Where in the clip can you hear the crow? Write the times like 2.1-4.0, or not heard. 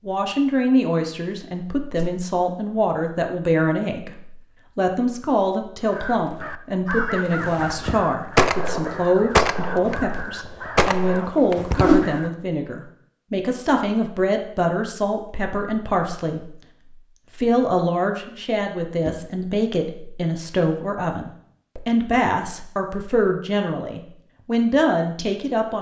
5.9-12.3.